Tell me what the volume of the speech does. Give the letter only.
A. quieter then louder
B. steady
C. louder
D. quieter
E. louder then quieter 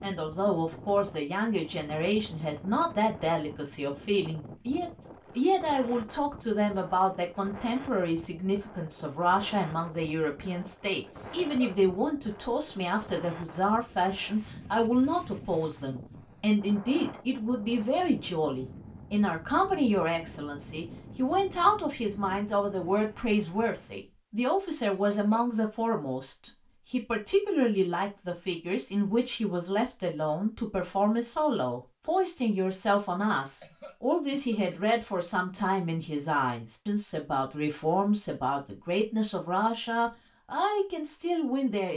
B.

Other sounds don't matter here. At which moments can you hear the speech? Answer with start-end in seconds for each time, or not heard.
0.0-41.9.